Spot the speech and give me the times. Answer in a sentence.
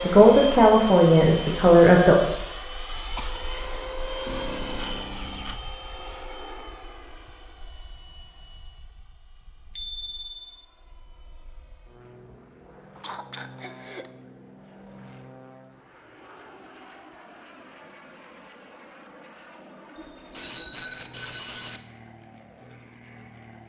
The speech can be heard from 0.0 to 2.1 s.